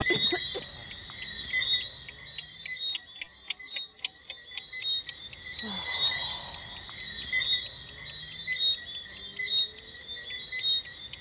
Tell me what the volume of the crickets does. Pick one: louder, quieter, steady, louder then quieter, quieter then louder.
quieter then louder.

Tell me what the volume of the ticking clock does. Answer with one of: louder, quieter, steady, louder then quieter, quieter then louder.
louder then quieter.